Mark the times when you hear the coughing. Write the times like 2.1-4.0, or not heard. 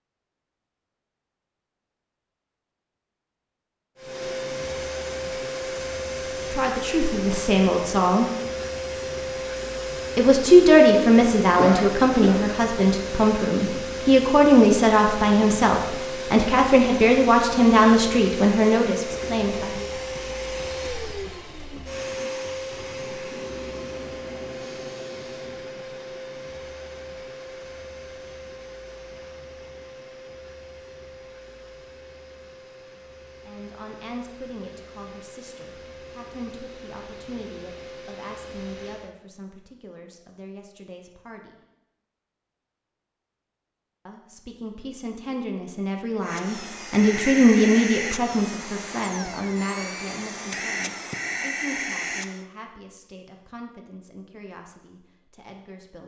11.6-12.7.